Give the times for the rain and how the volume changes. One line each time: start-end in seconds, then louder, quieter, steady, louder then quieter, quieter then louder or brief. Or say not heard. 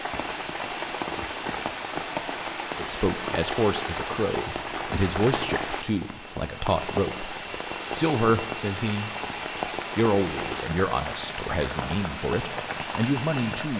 0.0-13.7 steady.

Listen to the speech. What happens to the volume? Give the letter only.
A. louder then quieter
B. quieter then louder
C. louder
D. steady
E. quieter
D.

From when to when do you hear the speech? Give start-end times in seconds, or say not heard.
2.8-9.1, 9.9-13.7.